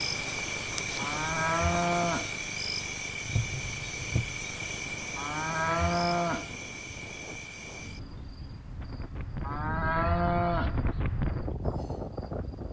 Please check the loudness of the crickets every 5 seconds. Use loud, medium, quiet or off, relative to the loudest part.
loud, medium, quiet.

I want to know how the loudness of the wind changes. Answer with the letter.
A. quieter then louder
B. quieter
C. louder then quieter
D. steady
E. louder
E.